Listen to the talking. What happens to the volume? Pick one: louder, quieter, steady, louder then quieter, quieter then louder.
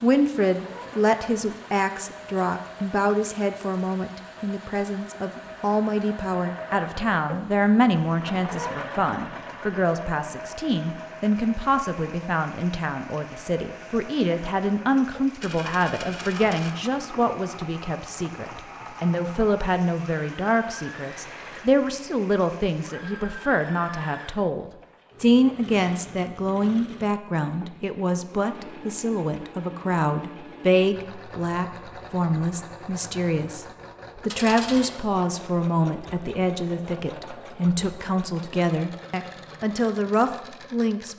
steady.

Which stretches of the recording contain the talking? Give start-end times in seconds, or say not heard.
0.0-41.1.